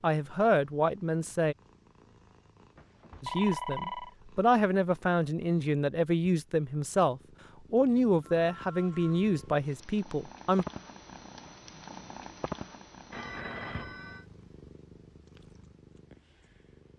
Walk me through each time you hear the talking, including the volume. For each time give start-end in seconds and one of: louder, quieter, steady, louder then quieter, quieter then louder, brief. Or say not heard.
0.0-1.6 brief
3.2-10.7 steady.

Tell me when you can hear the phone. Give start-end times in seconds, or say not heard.
2.8-4.2, 8.4-9.4, 13.1-14.2.